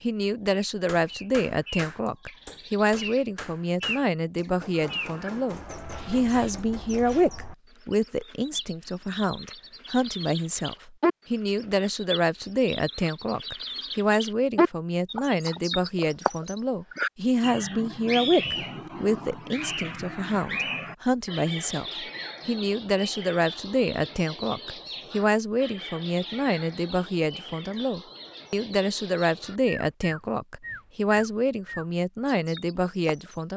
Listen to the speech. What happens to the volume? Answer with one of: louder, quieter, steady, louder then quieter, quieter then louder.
steady.